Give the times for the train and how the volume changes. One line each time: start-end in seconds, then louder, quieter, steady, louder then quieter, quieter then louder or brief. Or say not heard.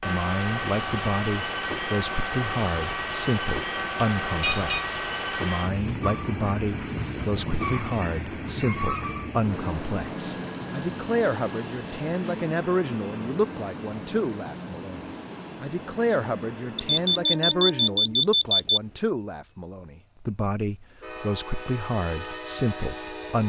0.0-23.4 quieter.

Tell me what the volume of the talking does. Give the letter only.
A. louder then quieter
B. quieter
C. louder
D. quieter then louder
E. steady
E.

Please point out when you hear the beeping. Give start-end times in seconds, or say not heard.
4.0-4.8, 10.2-12.1, 16.8-18.8.